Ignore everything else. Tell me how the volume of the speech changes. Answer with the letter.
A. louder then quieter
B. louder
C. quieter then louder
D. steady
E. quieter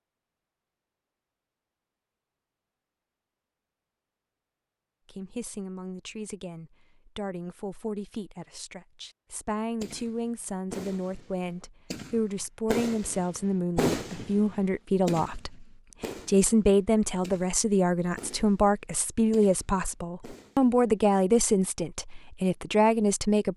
B.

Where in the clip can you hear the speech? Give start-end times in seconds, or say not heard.
5.0-15.7, 16.2-23.5.